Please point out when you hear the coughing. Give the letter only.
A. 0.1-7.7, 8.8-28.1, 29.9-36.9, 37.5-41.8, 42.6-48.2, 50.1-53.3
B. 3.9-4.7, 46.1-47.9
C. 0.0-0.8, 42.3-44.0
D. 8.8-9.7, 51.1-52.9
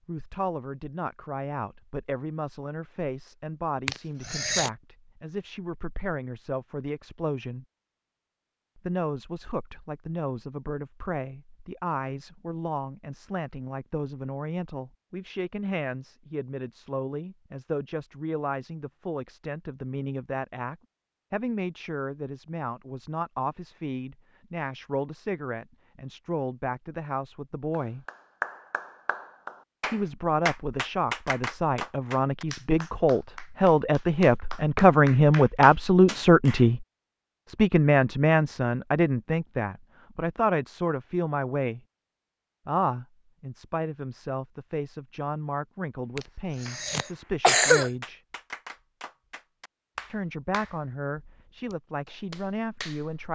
B.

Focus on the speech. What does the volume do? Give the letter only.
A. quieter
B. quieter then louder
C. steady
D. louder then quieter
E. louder
D.